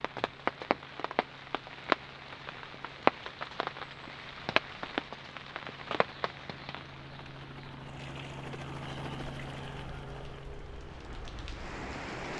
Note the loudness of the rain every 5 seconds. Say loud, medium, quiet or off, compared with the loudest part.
loud, quiet, medium.